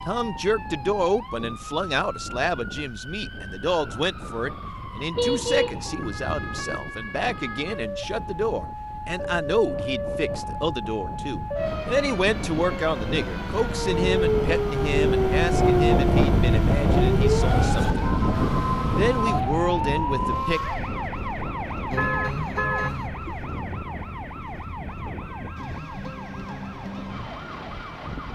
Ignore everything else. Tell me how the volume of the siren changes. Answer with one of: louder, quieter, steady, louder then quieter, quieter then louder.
louder then quieter.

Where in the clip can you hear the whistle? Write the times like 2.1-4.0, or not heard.
not heard.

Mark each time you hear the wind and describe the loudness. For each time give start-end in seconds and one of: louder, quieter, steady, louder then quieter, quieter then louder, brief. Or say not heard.
0.0-28.3 louder then quieter.